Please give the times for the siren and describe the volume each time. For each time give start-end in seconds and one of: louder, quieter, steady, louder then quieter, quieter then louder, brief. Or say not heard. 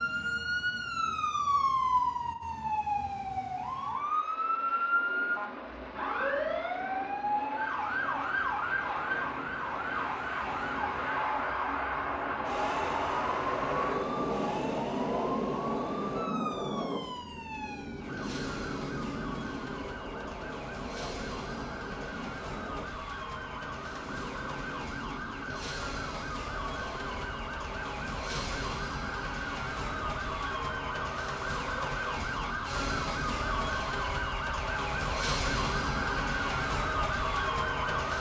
0.0-38.1 quieter then louder.